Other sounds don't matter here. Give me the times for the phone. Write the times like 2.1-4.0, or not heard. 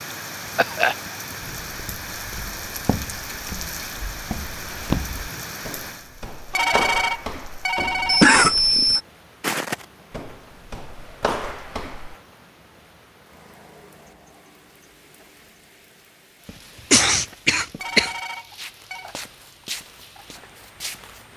6.5-8.3, 17.8-19.1.